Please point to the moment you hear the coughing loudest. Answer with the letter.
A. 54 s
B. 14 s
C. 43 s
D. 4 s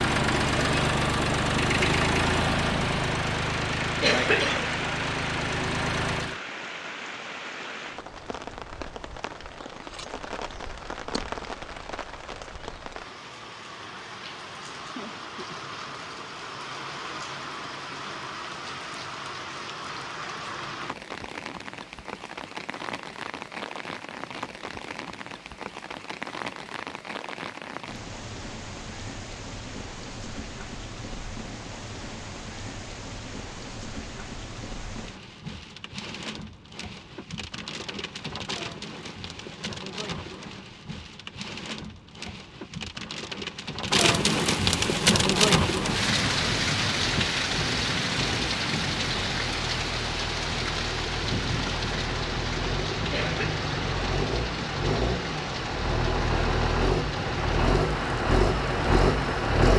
D.